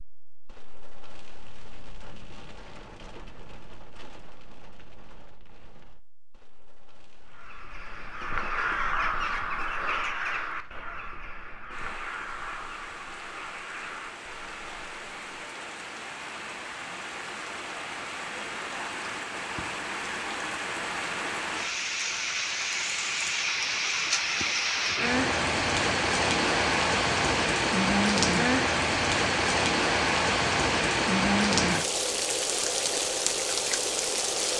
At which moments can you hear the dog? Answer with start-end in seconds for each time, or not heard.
not heard.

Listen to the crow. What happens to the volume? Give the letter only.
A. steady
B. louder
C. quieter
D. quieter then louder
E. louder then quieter
C.